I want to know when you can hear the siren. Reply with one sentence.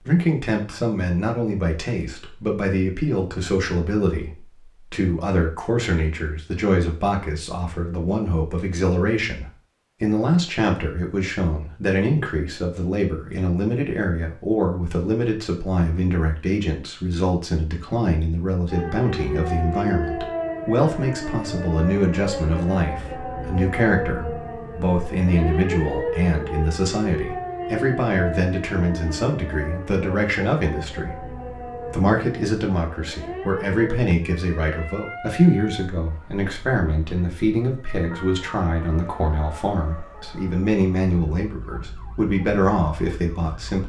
The siren can be heard from 18.6 to 43.8 s.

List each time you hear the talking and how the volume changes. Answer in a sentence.
The talking can be heard from 0.1 to 43.8 s, at a steady volume.